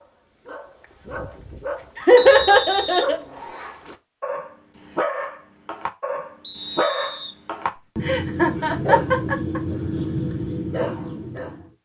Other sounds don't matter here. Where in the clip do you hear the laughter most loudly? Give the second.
2 s.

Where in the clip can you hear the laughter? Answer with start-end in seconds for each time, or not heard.
1.9-3.2, 8.0-9.6.